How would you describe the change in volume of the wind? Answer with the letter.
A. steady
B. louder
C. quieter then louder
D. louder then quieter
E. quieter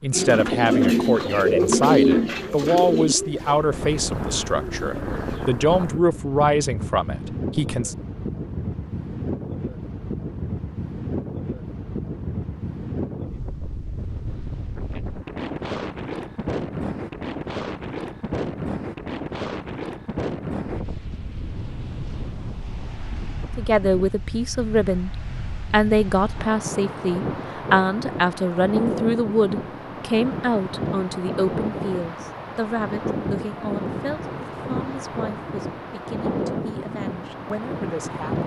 A.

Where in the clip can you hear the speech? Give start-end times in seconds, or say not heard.
0.0-8.0, 23.6-38.4.